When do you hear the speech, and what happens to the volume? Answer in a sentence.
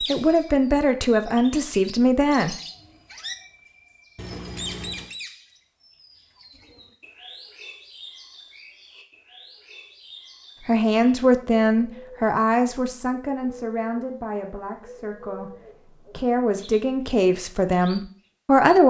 You can hear the speech briefly from 0.0 to 2.5 s; and from 10.7 to 18.8 s, getting quieter then louder.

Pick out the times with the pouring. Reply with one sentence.
You can hear the pouring from 4.2 to 5.1 s.